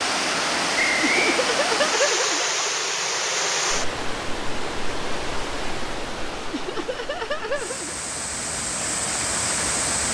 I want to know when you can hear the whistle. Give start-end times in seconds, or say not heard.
0.8-1.4.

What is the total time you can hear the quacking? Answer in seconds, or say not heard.
not heard.